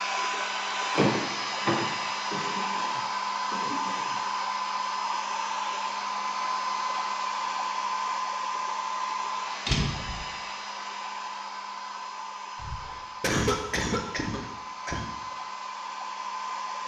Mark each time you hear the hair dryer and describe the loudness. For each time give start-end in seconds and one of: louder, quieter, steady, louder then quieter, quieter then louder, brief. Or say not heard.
0.0-16.8 quieter.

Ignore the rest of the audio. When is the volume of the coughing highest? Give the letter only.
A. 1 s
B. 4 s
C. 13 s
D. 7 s
C.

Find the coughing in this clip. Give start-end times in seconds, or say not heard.
2.3-4.3, 12.6-15.1.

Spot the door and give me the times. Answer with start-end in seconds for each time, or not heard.
0.9-2.5, 9.7-10.2.